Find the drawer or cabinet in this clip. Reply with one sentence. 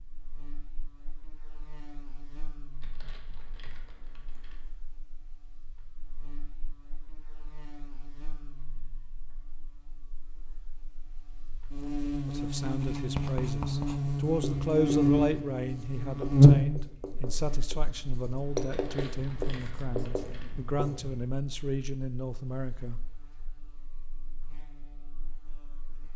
The drawer or cabinet can't be heard in this clip.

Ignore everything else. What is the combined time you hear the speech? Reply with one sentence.
The speech can be heard for 11 seconds in total.